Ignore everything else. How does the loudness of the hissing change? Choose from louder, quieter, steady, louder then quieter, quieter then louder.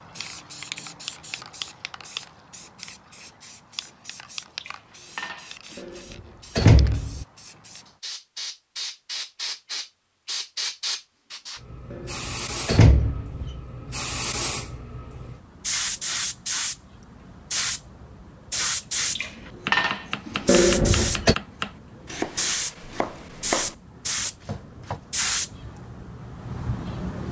louder.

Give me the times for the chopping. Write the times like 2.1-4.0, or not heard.
19.6-25.0.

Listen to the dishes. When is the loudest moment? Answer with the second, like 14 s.
20 s.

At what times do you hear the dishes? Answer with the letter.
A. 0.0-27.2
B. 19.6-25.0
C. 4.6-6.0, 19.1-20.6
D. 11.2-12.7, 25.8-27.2
C.